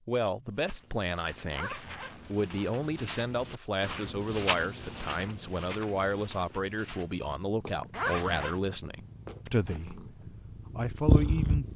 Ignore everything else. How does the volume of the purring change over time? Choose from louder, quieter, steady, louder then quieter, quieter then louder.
louder.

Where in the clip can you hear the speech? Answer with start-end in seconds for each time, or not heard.
0.1-11.7.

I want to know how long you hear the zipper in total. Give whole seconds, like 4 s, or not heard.
2 s.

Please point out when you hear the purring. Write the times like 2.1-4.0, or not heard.
6.8-11.7.